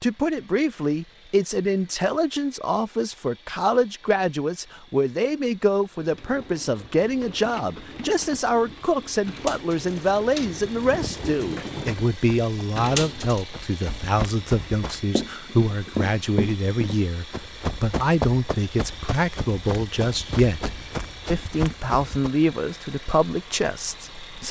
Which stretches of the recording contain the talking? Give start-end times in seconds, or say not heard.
0.0-24.4.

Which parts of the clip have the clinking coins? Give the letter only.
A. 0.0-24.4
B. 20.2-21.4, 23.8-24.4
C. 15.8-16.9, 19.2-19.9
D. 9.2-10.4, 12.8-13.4
D.